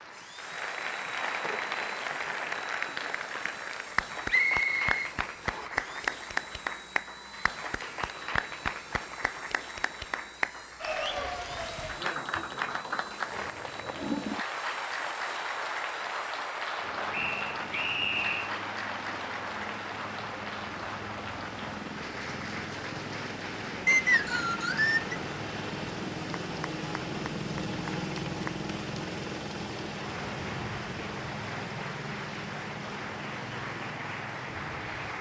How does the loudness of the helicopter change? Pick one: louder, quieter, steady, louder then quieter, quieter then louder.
louder.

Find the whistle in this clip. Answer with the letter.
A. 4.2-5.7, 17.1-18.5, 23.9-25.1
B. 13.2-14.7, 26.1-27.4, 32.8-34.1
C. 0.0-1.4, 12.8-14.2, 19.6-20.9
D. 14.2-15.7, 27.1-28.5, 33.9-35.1
A.